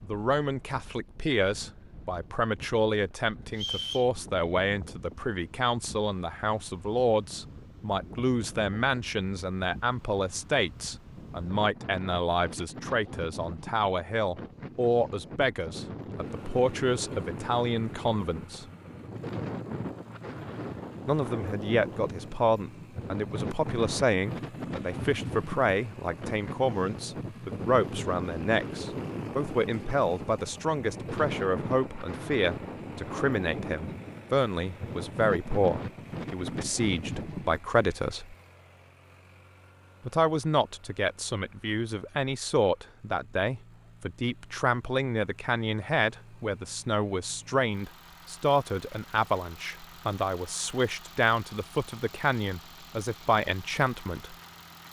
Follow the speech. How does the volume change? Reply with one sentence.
The volume of the speech stays about the same.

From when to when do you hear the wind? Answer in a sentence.
You can hear the wind from 0.0 to 37.6 s.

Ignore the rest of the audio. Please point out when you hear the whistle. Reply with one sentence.
You can hear the whistle from 3.5 to 4.1 s.